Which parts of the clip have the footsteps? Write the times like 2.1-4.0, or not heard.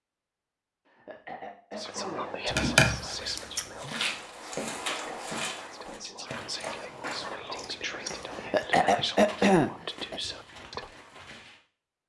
3.8-11.6.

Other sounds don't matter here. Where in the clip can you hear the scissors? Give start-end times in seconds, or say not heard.
2.5-3.6, 6.5-8.4.